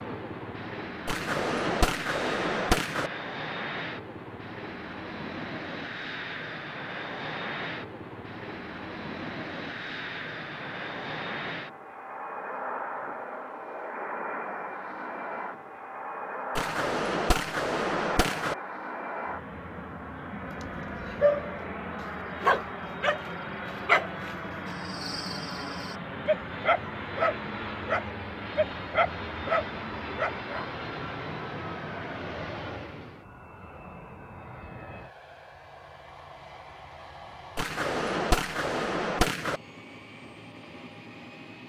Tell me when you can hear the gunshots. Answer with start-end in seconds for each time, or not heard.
1.1-3.1, 16.6-18.6, 37.5-39.6.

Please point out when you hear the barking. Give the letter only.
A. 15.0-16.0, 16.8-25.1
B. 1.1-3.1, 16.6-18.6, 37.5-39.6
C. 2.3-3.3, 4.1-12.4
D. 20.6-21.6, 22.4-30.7
D.